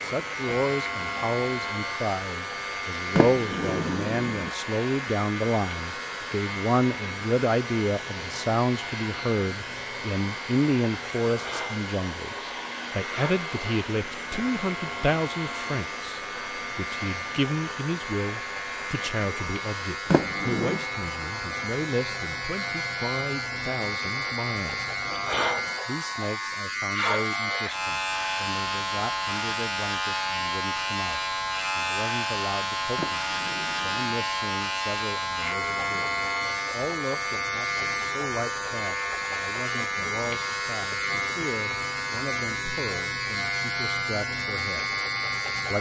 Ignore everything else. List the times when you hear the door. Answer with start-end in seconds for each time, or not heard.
3.1-4.5, 20.1-20.9, 33.0-34.0.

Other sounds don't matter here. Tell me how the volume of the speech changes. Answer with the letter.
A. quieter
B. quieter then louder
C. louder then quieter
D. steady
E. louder
A.